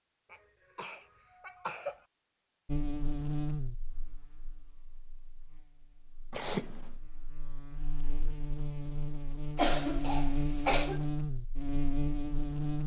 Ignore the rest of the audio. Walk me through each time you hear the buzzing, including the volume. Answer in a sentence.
The buzzing can be heard from 2.6 to 12.8 s, getting quieter then louder.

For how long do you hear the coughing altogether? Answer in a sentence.
You can hear the coughing for 4 seconds altogether.